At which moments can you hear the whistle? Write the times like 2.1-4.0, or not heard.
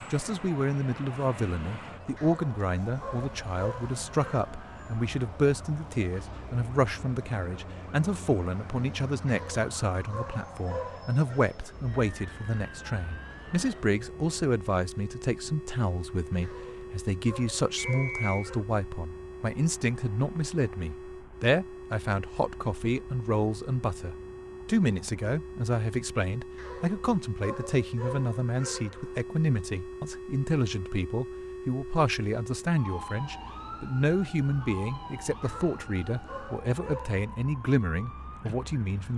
17.8-18.4.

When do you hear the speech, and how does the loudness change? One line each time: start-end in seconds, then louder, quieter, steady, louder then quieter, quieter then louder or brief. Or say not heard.
0.1-39.1 steady.